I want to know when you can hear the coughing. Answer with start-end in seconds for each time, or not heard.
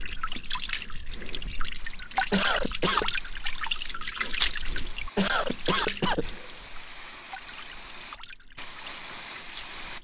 2.3-3.1, 5.2-6.5.